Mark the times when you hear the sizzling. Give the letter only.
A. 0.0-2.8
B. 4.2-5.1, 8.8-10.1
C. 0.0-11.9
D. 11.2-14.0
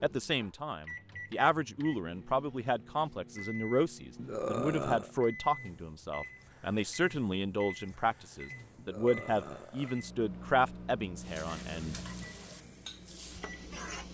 D.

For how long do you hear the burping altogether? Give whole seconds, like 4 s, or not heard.
2 s.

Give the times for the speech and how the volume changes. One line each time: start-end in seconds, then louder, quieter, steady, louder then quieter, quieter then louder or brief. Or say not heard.
0.0-11.9 steady.